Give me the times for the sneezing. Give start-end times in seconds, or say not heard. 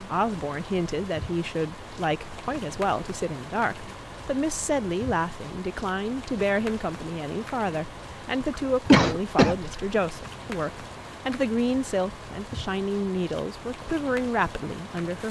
8.4-9.8.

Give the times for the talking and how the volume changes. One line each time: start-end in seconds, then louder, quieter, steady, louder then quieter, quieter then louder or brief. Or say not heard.
0.0-15.2 steady.